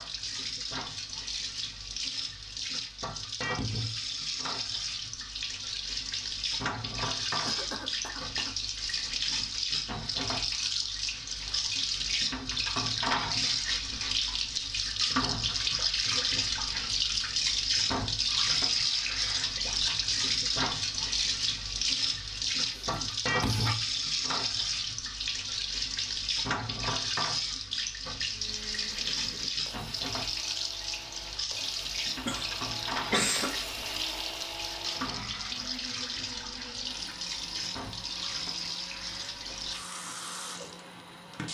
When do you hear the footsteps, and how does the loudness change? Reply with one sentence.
You can't hear the footsteps here.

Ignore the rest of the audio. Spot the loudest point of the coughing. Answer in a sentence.
The loudest moment of the coughing is at 33 seconds.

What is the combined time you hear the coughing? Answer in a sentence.
The coughing can be heard for 4 seconds in total.